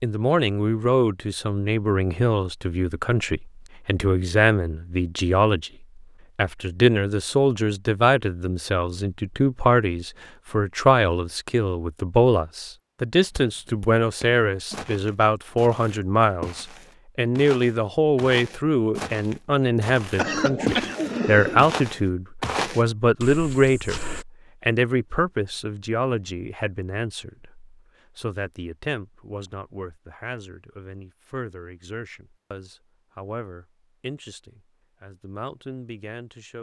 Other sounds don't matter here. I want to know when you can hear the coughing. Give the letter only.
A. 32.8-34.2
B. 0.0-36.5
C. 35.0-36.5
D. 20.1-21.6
D.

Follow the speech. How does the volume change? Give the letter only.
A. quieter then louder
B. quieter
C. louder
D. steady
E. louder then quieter
B.